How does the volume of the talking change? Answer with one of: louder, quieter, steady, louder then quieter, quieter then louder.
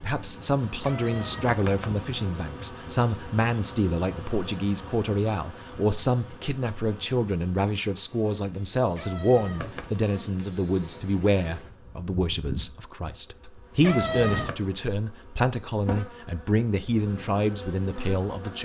steady.